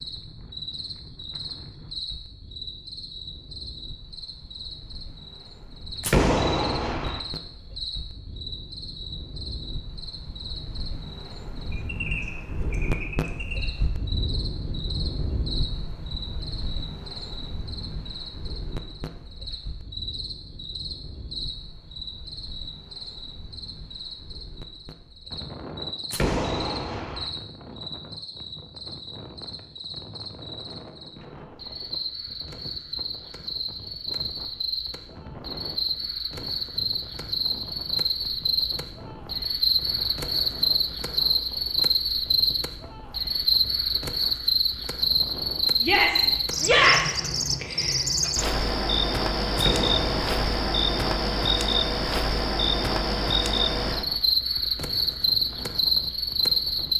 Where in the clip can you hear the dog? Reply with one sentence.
You can't hear the dog here.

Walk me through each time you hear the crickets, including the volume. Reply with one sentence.
The crickets can be heard from 0.0 to 56.9 s, getting louder.